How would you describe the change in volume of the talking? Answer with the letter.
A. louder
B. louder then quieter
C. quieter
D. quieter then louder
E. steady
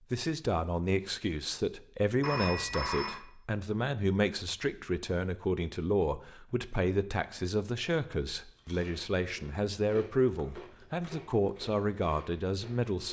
E.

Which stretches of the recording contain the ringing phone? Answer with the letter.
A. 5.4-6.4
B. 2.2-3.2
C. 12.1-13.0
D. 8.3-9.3
B.